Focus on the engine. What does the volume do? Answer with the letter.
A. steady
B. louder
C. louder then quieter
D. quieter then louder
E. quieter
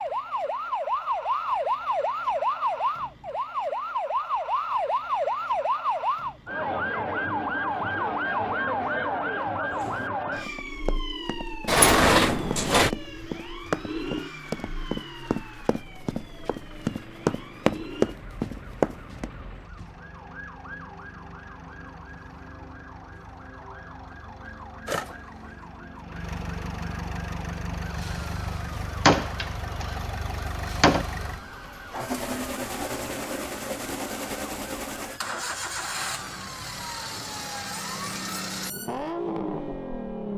B.